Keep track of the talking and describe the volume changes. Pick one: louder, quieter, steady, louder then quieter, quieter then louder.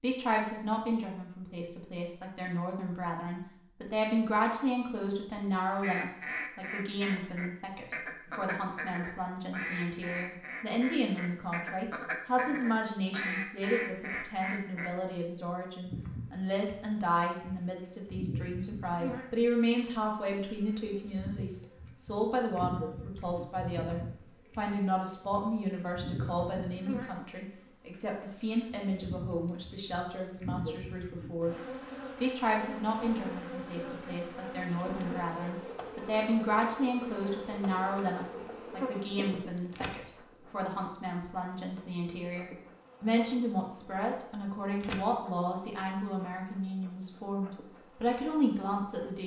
steady.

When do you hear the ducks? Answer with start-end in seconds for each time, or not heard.
5.8-14.9.